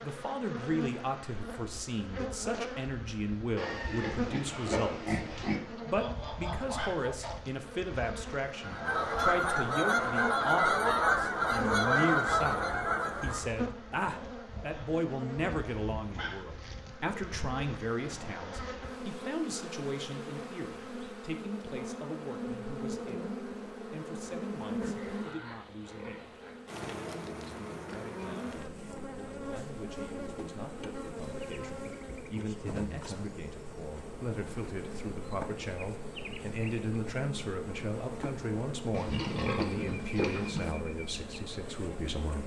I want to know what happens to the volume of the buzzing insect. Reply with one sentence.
The loudness of the buzzing insect stays about the same.